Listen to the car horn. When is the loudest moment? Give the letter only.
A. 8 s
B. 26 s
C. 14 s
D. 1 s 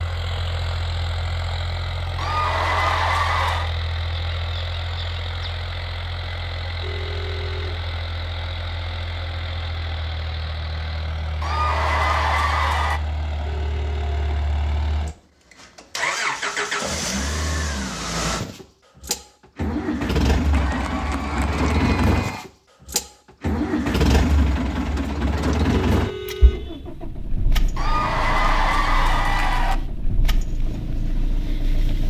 B.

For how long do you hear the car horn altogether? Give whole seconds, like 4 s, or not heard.
3 s.